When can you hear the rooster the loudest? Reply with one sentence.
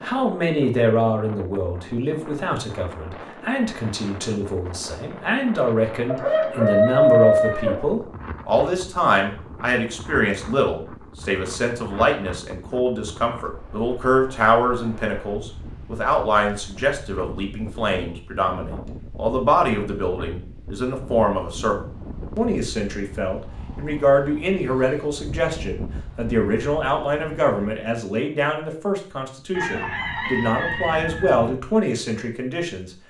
The loudest moment of the rooster is at 7 seconds.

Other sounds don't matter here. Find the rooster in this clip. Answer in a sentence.
The rooster can be heard from 6.0 to 7.8 s and from 29.6 to 31.6 s.